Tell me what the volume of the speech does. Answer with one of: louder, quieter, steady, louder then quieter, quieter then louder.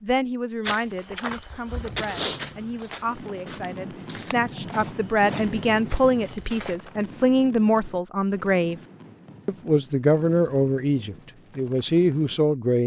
louder.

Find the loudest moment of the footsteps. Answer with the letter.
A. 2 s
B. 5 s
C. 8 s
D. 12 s
A.